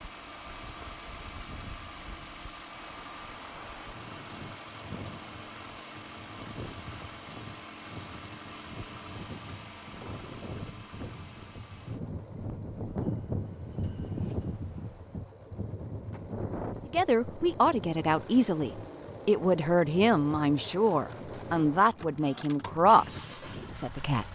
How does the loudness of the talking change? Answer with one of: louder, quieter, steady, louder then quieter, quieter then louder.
steady.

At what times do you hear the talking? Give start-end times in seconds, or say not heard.
16.9-24.3.